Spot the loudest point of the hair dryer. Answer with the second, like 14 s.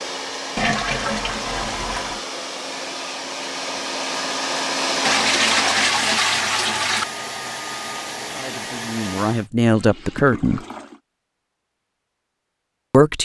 5 s.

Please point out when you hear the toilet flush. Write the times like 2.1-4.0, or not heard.
0.6-2.2, 5.0-7.0, 9.8-11.0.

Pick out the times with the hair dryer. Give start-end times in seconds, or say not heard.
0.0-9.5.